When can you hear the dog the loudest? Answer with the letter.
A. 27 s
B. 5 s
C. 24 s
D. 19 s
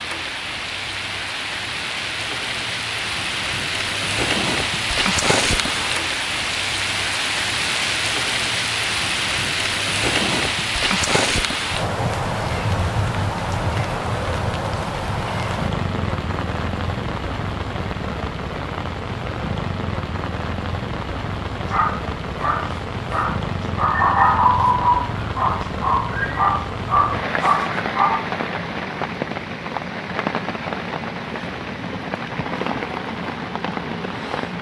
C.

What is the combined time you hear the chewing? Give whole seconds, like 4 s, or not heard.
not heard.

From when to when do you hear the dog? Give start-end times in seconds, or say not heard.
21.7-28.3.